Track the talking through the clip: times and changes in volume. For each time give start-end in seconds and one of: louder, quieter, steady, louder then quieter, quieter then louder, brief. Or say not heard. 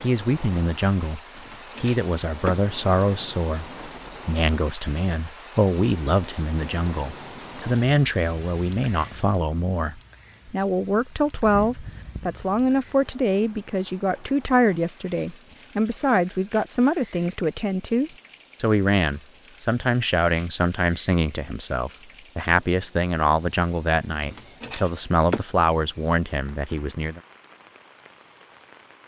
0.0-27.2 steady.